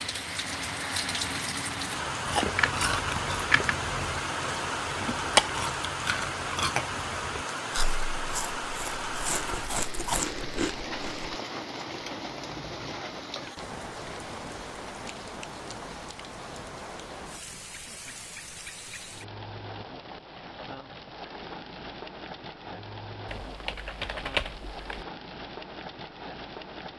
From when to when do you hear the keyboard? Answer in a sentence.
You can hear the keyboard from 2.4 to 3.8 s and from 23.2 to 25.1 s.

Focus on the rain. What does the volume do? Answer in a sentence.
The volume of the rain goes down.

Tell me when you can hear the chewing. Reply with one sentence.
The chewing can be heard from 1.9 to 11.3 s.